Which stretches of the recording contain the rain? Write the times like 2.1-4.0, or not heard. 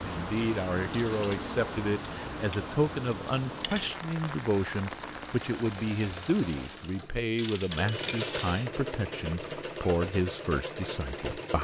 0.0-6.8.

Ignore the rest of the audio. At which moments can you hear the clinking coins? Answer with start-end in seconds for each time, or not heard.
3.1-4.0, 7.3-8.7.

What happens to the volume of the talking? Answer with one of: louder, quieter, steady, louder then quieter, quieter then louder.
steady.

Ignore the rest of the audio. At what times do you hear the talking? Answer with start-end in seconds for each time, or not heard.
0.0-11.5.